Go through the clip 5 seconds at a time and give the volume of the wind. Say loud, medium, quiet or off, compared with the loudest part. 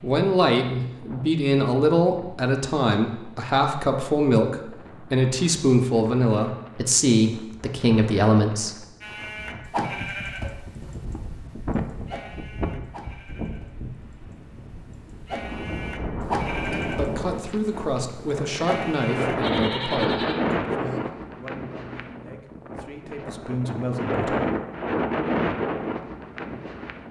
quiet, quiet, medium, loud, loud, loud.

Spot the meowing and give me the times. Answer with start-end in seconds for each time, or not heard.
not heard.